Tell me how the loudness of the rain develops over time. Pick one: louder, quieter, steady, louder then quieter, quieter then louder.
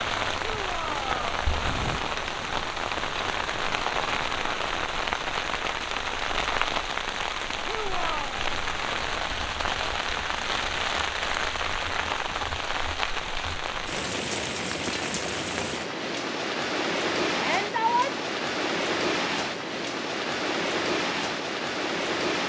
steady.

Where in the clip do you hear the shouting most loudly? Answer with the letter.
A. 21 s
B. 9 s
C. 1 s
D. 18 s
D.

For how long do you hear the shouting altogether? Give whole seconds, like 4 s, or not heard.
2 s.